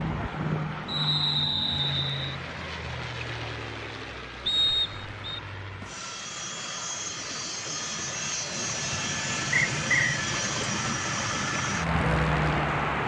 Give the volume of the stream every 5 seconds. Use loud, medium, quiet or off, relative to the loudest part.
medium, medium, loud.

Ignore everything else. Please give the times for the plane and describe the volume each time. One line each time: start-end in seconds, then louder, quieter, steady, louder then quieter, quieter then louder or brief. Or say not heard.
0.0-13.0 quieter then louder.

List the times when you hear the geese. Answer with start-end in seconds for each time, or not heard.
not heard.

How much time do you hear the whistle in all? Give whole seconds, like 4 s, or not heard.
3 s.